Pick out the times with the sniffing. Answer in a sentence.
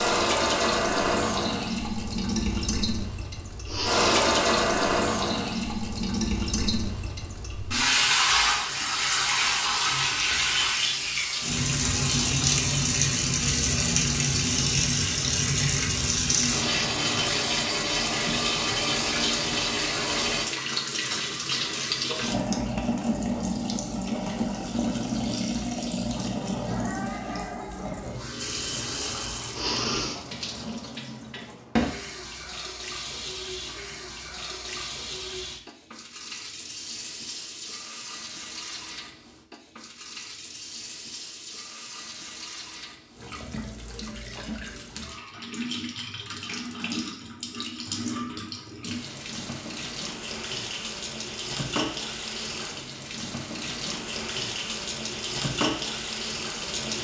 The sniffing can be heard from 3.6 to 4.2 s and from 29.5 to 30.2 s.